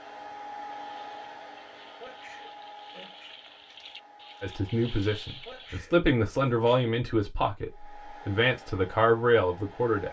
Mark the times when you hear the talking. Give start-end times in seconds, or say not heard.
4.4-10.0.